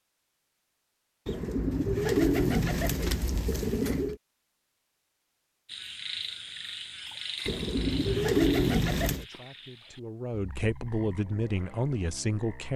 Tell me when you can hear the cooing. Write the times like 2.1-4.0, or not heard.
1.2-4.2, 7.5-9.2.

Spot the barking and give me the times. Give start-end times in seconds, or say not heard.
not heard.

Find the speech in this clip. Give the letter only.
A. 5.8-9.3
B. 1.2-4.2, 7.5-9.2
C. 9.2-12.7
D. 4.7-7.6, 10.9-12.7
C.